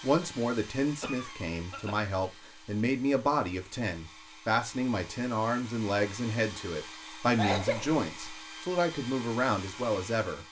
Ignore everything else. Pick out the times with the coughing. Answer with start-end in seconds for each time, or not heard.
1.0-2.0, 7.3-8.3.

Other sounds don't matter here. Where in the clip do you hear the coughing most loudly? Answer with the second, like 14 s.
8 s.